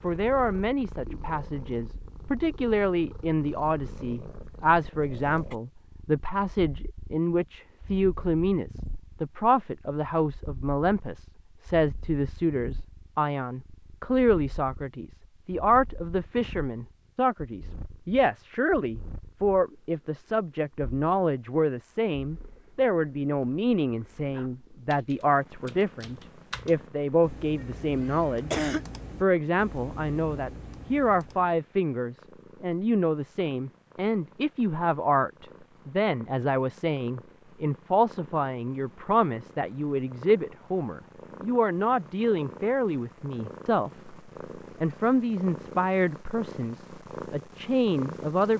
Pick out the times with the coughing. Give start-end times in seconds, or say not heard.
27.6-28.9.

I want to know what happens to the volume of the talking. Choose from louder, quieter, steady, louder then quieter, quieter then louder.
steady.